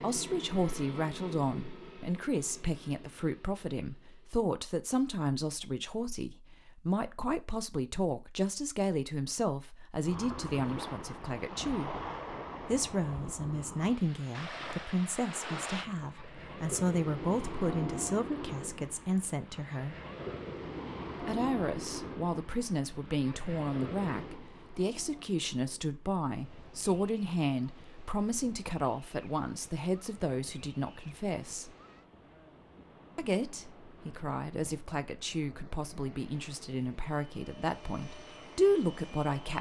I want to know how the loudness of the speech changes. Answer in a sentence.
The volume of the speech stays about the same.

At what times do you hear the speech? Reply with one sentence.
You can hear the speech from 0.0 to 11.9 s, from 12.7 to 19.9 s, from 21.2 to 31.7 s and from 33.1 to 39.5 s.